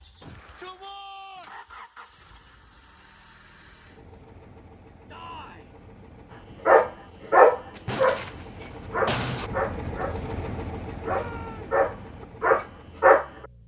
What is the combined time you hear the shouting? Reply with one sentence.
The shouting can be heard for 3 seconds in total.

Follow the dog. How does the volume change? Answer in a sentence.
The volume of the dog goes down, then up.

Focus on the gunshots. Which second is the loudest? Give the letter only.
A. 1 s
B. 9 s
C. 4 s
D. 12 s
B.